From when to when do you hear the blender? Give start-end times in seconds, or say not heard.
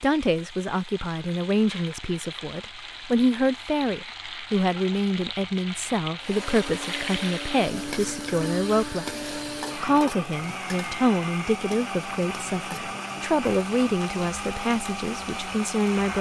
6.2-16.1.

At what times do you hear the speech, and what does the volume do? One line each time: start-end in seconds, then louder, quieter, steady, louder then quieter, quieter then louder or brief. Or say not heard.
0.0-16.1 steady.